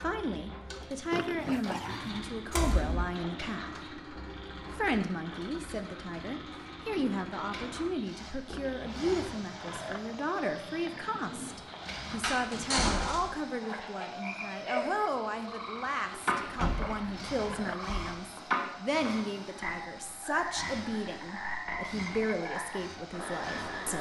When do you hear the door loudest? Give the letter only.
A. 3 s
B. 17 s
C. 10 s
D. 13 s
D.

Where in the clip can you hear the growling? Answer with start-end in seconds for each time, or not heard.
1.1-2.2, 8.4-11.2, 16.2-17.9.